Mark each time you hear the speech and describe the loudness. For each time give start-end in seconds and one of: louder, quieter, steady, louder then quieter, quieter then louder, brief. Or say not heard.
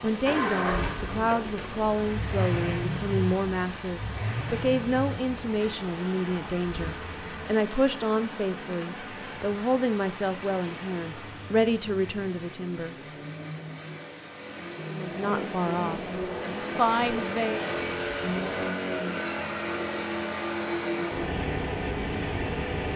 0.0-12.9 steady
14.8-17.8 brief.